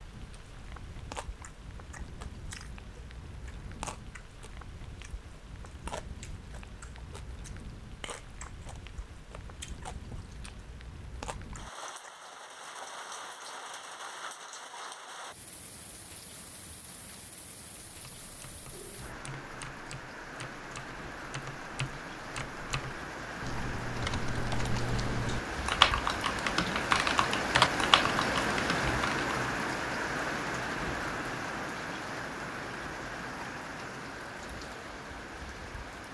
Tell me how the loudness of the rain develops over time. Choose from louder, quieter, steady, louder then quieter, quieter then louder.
louder.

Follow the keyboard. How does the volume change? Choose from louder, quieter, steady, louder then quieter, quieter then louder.
louder.